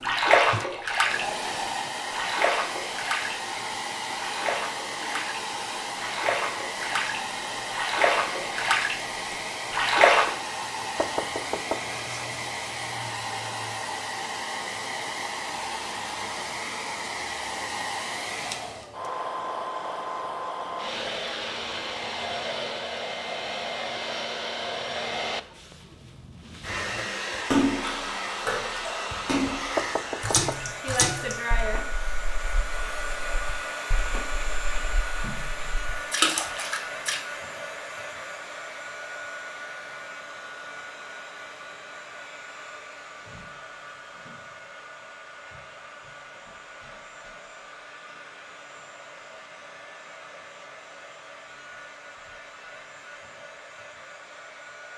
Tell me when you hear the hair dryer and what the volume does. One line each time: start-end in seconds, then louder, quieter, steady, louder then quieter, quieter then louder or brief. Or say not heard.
0.0-54.9 quieter.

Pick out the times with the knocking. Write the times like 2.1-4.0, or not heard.
10.9-12.1, 29.8-31.0.